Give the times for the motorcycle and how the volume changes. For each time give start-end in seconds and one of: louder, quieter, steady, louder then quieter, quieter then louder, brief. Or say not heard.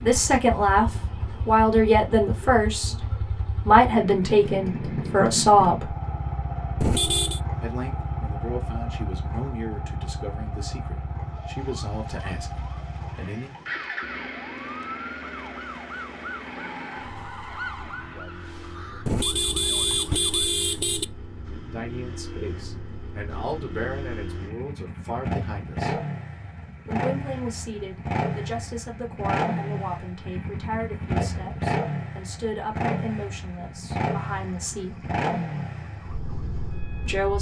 0.0-37.3 quieter then louder.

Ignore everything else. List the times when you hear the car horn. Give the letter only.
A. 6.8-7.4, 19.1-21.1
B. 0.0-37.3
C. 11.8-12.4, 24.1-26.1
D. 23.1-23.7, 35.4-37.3
A.